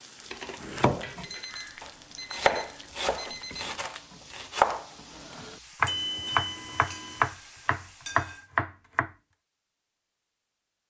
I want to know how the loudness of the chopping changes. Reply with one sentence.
The loudness of the chopping goes down, then up.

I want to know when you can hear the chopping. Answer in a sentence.
The chopping can be heard from 0.6 to 9.1 s.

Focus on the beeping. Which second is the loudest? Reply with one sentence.
The loudest moment of the beeping is at 6 seconds.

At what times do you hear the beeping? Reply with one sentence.
The beeping can be heard from 1.2 to 3.8 s and from 5.8 to 7.3 s.